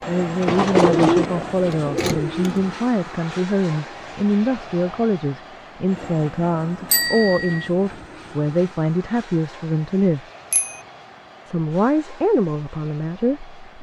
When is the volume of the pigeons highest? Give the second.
1 s.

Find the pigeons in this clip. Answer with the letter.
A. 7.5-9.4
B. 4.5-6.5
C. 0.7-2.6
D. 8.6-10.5
C.